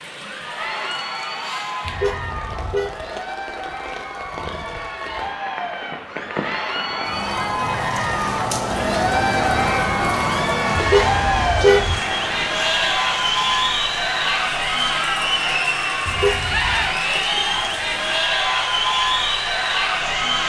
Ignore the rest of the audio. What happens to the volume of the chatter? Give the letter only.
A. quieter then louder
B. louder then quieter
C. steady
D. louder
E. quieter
D.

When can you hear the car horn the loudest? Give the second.
12 s.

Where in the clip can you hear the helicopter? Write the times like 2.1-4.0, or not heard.
not heard.